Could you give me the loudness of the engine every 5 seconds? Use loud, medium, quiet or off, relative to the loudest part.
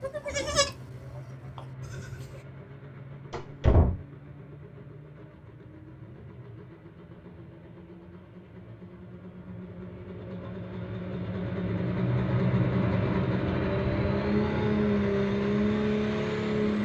quiet, quiet, loud, loud.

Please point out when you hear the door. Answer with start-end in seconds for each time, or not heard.
3.3-4.0.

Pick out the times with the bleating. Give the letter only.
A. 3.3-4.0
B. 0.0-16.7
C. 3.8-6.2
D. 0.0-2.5
D.